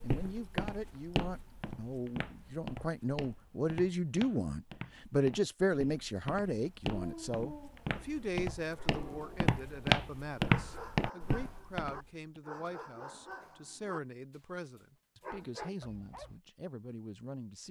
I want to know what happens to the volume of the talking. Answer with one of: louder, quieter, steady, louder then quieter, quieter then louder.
louder then quieter.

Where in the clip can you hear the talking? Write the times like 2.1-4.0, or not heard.
0.0-17.6.